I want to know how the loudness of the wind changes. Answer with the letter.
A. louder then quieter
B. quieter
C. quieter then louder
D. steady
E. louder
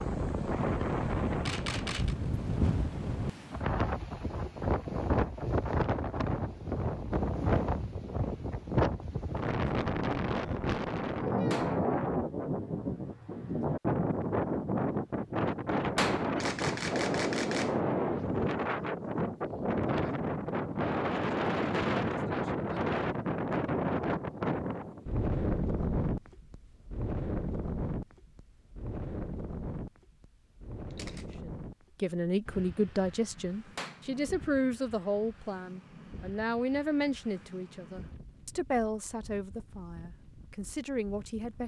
B.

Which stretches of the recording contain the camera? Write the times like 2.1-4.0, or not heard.
1.4-2.1, 16.4-17.8, 30.9-31.4.